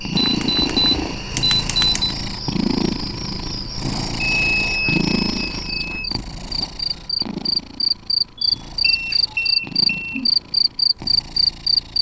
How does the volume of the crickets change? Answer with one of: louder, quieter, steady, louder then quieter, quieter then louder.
louder.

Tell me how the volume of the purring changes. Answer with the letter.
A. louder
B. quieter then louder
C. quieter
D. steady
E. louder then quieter
C.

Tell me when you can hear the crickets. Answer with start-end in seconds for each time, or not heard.
0.0-11.9.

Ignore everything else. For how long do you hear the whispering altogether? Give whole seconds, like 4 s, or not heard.
not heard.